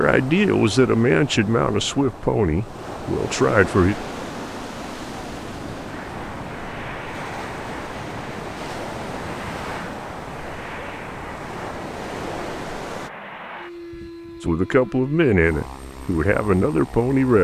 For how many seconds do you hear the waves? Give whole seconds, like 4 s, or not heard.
13 s.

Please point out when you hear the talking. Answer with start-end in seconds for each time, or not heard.
0.0-4.0, 14.4-17.3.